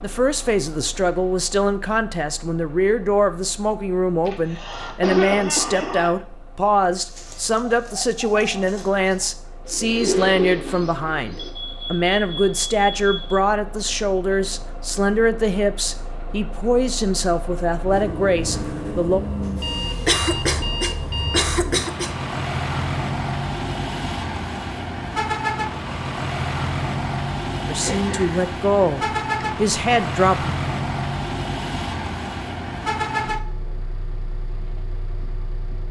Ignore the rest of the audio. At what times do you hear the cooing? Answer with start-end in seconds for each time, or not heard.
7.0-11.5.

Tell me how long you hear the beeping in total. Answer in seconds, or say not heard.
4 s.